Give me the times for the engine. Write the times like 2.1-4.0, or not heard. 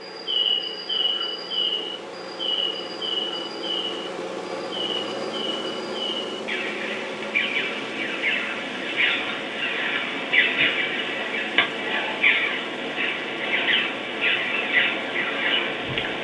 0.0-16.1.